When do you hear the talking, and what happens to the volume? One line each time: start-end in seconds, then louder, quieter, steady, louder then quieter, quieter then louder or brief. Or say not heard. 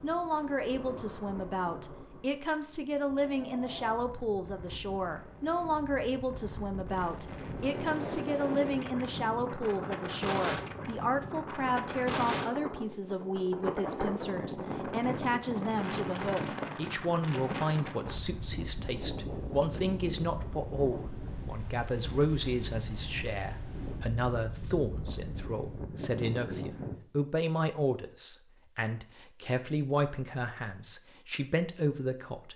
0.0-32.5 steady.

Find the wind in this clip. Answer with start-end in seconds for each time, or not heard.
0.0-26.9.